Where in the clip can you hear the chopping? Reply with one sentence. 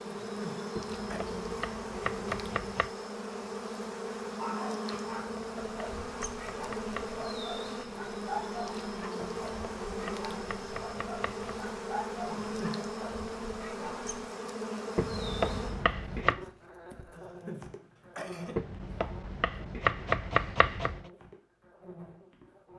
The chopping can be heard from 0.8 to 2.9 s, from 4.9 to 7.5 s, from 9.2 to 11.7 s, from 14.9 to 16.4 s and from 18.6 to 21.1 s.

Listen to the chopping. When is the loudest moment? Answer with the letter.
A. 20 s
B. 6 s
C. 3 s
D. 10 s
A.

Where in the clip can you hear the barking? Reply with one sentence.
The barking can be heard from 4.2 to 14.2 s.